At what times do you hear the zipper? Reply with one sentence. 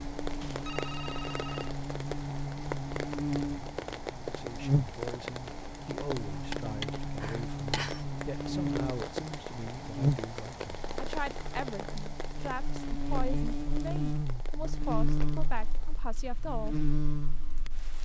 You can't hear the zipper here.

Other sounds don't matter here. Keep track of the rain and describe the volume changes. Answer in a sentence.
The loudness of the rain goes down.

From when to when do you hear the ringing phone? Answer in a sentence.
The ringing phone can be heard from 0.4 to 1.8 s, from 7.2 to 8.1 s and from 14.8 to 15.3 s.